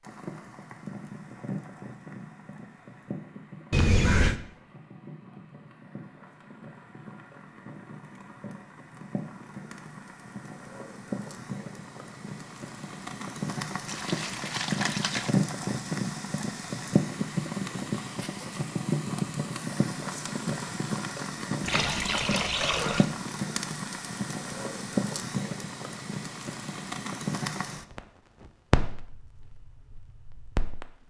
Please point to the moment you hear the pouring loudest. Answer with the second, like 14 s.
4 s.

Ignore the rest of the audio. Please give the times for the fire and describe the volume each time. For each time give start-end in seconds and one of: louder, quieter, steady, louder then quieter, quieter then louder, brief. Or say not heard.
0.0-30.9 louder.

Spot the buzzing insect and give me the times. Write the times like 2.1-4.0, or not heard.
not heard.